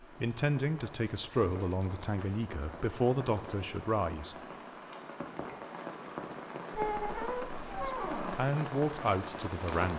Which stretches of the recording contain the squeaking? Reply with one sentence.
You can hear the squeaking from 1.2 to 2.9 s and from 6.7 to 8.5 s.